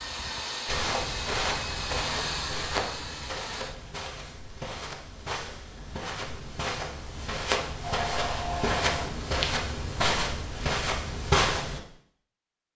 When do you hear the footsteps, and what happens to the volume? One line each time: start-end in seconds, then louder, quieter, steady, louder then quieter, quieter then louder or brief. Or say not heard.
0.7-11.8 quieter then louder.